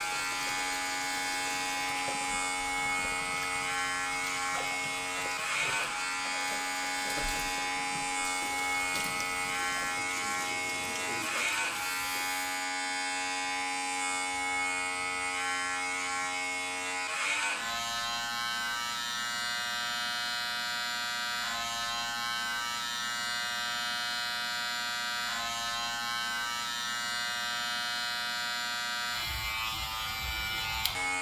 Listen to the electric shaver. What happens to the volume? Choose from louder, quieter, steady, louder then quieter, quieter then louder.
steady.